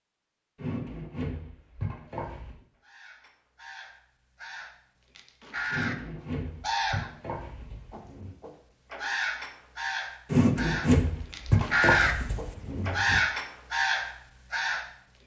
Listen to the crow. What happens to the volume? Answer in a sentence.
The volume of the crow goes up.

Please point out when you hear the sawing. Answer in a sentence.
You can hear the sawing from 0.6 to 2.6 s, from 5.7 to 8.3 s and from 10.3 to 13.2 s.